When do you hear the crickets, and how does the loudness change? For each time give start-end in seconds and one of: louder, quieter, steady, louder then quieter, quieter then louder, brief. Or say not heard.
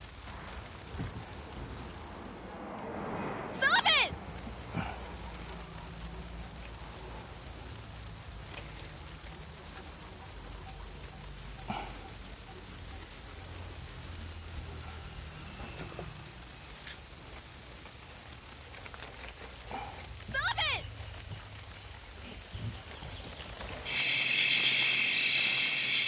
0.0-26.0 steady.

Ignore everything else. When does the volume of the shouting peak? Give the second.
4 s.